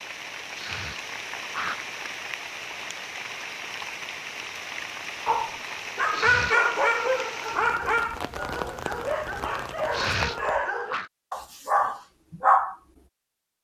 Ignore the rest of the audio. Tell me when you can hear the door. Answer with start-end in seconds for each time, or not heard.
not heard.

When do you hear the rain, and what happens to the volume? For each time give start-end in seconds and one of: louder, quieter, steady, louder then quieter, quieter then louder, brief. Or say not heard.
0.0-10.7 steady.